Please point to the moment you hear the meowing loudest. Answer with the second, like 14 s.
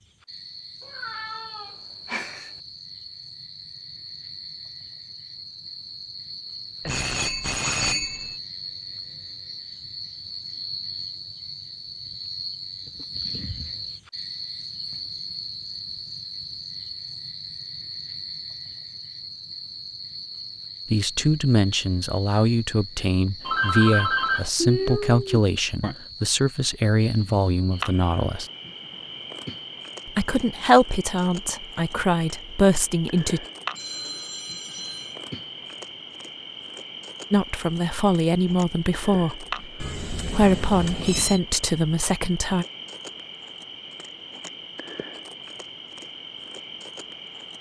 25 s.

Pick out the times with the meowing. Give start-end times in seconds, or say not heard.
0.8-2.5, 24.6-25.9, 39.8-41.4.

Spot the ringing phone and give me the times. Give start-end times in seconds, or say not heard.
6.8-8.3, 23.4-24.5, 33.8-35.2.